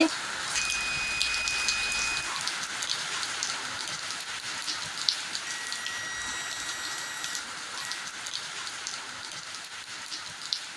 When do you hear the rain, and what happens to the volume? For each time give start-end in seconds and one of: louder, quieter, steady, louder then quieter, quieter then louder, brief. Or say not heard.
0.0-10.7 quieter.